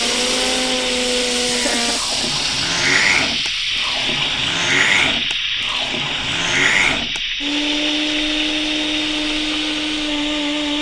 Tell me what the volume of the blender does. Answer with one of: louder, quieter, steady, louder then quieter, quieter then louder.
steady.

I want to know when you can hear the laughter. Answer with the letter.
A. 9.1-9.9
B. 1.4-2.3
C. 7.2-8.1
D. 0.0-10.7
B.